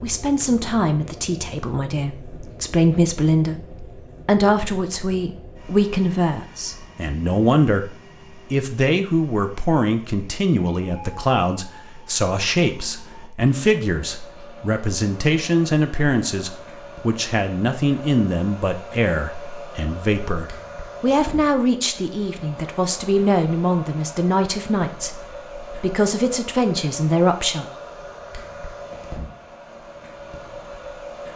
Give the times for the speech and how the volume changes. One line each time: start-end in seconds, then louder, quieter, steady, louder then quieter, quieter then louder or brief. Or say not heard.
0.0-27.6 steady.